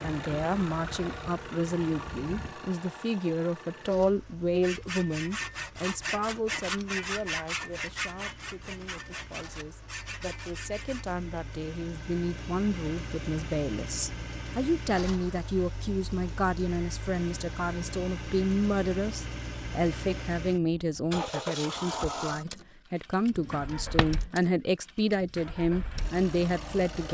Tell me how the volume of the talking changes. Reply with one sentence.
The volume of the talking goes down, then up.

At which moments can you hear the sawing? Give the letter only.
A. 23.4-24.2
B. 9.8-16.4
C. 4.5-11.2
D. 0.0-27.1
C.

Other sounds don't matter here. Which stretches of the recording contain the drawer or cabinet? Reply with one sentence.
The drawer or cabinet can be heard from 23.4 to 24.2 s.